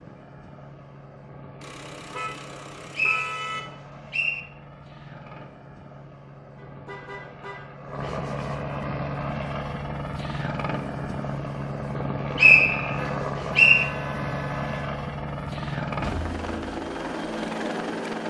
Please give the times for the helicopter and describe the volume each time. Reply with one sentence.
The helicopter can be heard from 0.0 to 18.2 s, getting louder.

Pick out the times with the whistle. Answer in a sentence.
You can hear the whistle from 3.0 to 4.5 s and from 11.9 to 13.8 s.